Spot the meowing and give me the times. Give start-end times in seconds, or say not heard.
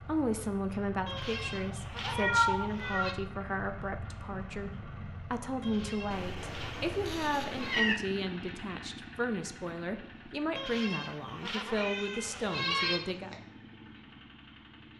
2.0-3.1, 6.1-8.0, 11.7-13.4.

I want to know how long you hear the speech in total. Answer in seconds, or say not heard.
13 s.